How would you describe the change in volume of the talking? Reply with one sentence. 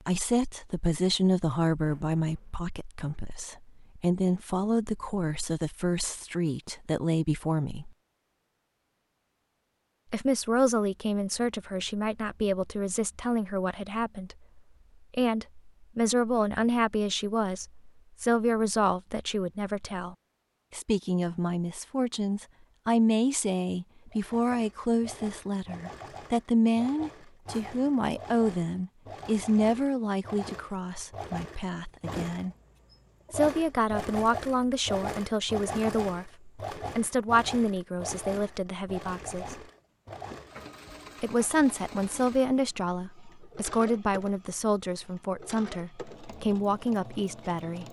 The loudness of the talking stays about the same.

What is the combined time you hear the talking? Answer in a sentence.
You can hear the talking for 43 seconds altogether.